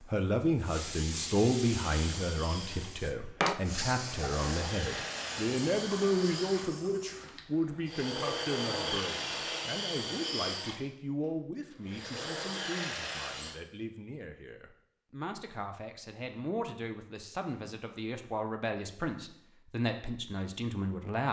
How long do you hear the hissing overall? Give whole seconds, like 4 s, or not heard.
7 s.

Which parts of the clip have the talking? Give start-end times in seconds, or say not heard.
0.0-21.2.